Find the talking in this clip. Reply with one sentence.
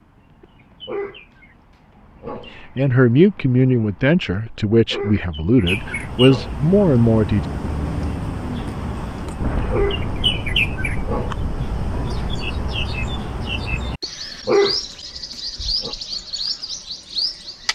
The talking can be heard from 2.5 to 7.5 s.